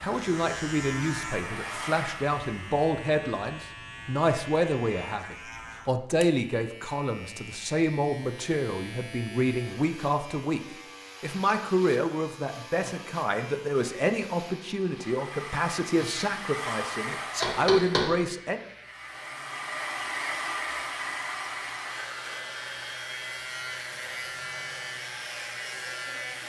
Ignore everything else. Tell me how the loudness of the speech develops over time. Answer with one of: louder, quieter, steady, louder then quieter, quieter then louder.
steady.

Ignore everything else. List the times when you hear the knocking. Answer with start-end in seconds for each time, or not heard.
17.4-18.1.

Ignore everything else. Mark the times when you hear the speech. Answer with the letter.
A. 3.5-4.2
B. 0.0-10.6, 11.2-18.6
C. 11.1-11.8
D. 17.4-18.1
B.